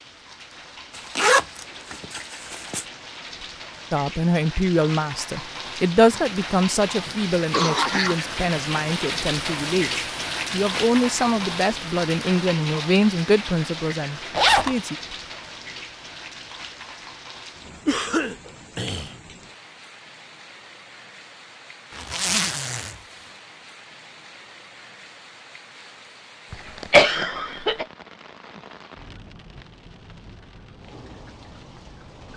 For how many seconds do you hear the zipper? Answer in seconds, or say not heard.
3 s.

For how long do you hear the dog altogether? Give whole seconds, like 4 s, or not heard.
not heard.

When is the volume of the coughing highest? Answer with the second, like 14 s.
27 s.